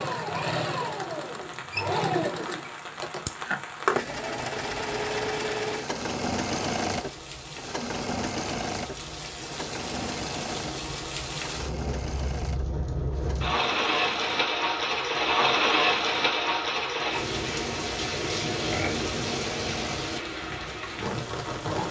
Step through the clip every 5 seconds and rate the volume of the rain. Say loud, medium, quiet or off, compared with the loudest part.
quiet, quiet, loud, loud, medium.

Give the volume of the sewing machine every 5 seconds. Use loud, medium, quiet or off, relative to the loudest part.
loud, loud, medium, medium, medium.